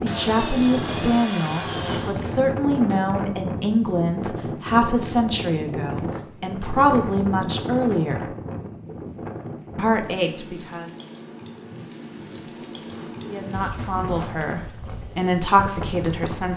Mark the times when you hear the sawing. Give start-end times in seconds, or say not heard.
0.1-2.1, 12.2-14.4.